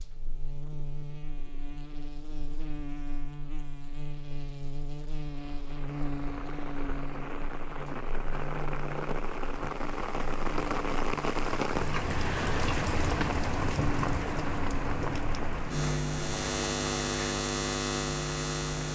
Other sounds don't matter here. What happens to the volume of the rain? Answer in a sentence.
The loudness of the rain goes up, then down.